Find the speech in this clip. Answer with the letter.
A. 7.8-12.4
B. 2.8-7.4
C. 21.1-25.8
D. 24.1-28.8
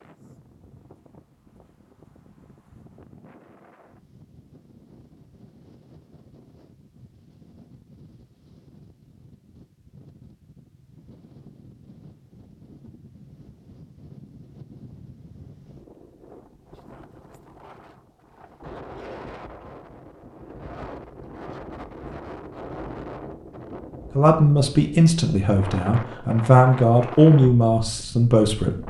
D.